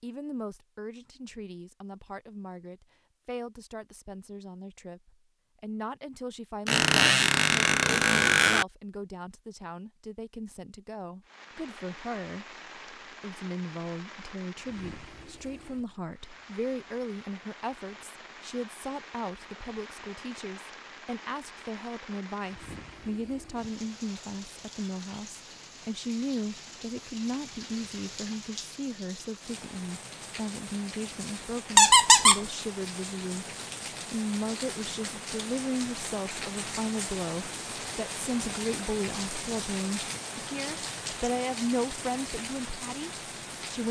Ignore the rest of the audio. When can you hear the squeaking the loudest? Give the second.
32 s.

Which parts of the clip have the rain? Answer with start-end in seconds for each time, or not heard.
11.2-43.8.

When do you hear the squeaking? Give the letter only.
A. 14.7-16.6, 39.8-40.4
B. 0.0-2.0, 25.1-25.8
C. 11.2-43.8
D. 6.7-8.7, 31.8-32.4
D.